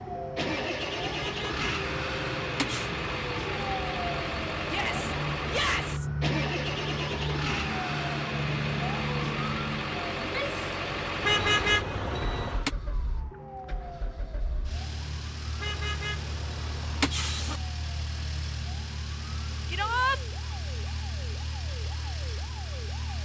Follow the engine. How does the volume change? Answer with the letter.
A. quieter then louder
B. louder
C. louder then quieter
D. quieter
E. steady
D.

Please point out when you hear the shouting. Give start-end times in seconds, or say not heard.
4.7-6.0, 10.2-10.7, 19.7-20.2.